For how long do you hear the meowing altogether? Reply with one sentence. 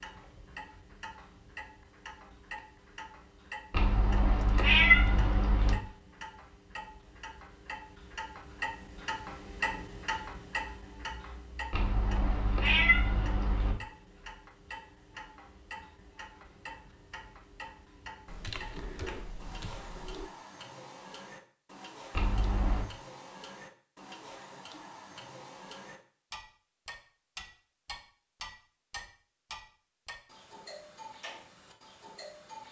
You can hear the meowing for 5 seconds altogether.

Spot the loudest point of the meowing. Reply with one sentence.
The volume of the meowing peaks at 5 seconds.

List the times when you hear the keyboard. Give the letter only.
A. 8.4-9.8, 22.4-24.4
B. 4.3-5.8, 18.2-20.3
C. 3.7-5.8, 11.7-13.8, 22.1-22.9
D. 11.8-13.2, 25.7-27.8
B.